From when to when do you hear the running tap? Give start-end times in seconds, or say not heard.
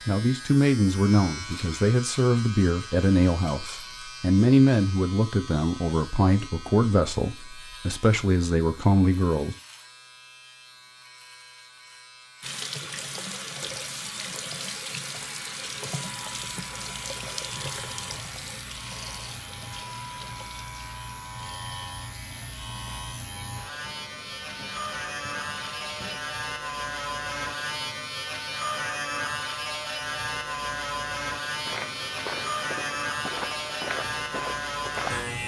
12.4-26.2.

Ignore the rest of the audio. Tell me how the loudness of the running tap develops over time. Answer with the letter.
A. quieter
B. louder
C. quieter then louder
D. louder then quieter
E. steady
A.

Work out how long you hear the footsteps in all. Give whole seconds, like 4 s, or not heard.
4 s.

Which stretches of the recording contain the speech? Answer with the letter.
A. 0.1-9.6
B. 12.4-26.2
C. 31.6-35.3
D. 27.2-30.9
A.